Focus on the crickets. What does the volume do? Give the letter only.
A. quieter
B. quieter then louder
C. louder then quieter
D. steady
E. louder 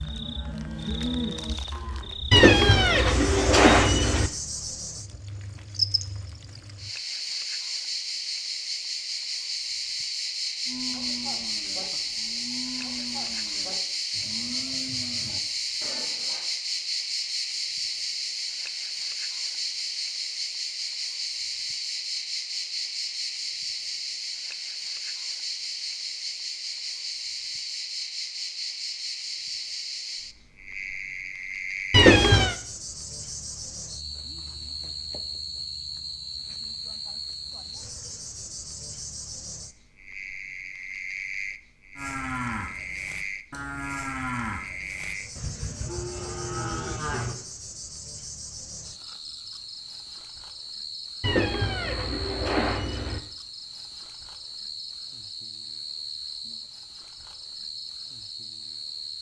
A.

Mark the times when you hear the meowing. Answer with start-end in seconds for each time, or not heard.
2.3-4.3, 31.9-32.5, 51.2-53.2.